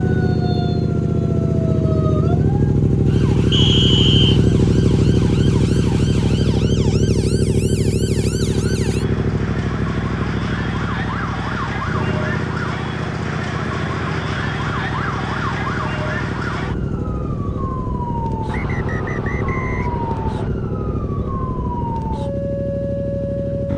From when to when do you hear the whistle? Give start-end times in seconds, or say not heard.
3.5-4.4, 18.4-20.5.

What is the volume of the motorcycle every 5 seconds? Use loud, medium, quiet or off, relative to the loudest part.
loud, loud, medium, medium, medium.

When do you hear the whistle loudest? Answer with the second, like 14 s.
4 s.